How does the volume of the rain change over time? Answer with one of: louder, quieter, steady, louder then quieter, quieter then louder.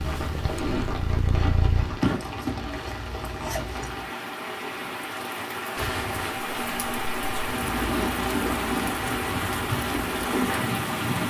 louder.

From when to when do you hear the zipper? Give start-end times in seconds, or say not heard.
1.9-4.1, 5.8-6.4.